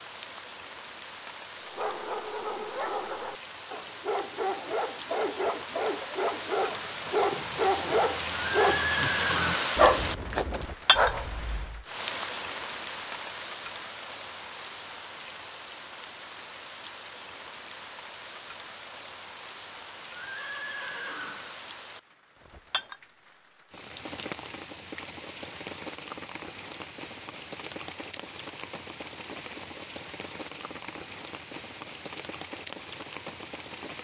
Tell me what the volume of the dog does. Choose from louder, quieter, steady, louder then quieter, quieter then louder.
louder.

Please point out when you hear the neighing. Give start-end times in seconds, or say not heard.
8.6-9.7, 20.1-21.6.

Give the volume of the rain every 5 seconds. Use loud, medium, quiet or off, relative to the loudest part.
medium, loud, loud, medium, medium, medium, medium.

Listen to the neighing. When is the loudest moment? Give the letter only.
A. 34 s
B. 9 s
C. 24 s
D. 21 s
B.